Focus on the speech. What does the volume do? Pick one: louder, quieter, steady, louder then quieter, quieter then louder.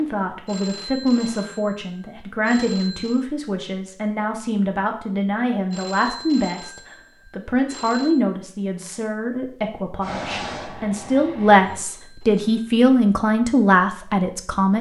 louder.